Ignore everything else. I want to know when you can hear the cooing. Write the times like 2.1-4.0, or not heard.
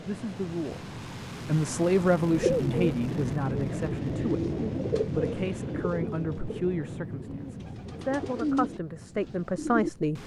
2.4-9.9.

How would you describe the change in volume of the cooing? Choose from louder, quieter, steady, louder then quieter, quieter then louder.
quieter then louder.